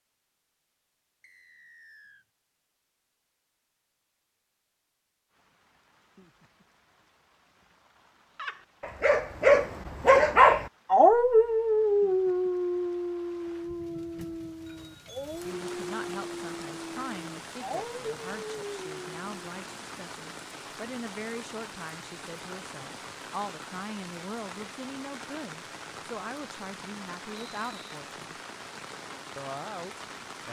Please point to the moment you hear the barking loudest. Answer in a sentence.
The volume of the barking peaks at 10 seconds.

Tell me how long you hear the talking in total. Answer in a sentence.
The talking can be heard for 14 seconds in total.